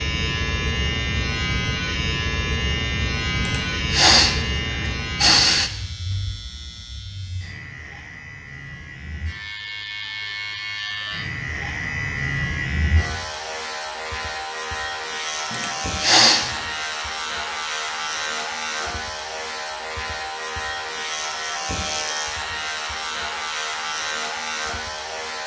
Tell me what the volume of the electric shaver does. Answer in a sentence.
The loudness of the electric shaver goes down, then up.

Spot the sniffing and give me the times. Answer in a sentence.
The sniffing can be heard from 3.4 to 5.7 s and from 15.5 to 16.6 s.